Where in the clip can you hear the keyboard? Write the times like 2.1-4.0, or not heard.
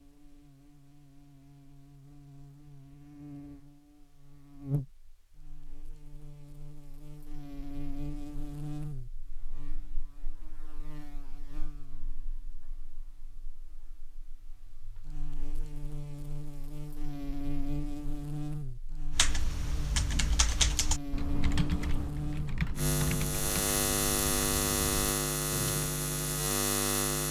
19.1-25.9.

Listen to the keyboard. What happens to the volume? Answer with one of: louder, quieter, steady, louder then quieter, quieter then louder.
quieter.